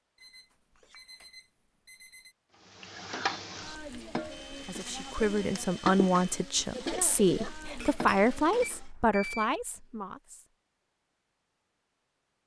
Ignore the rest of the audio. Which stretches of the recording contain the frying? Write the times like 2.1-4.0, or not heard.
2.6-8.8.